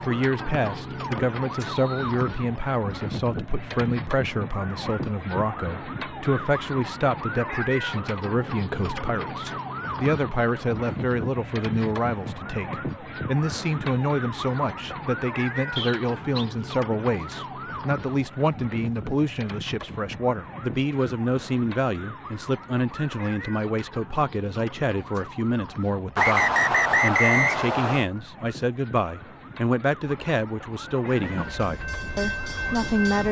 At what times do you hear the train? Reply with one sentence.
The train can be heard from 30.0 to 33.2 s.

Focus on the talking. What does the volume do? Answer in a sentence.
The loudness of the talking stays about the same.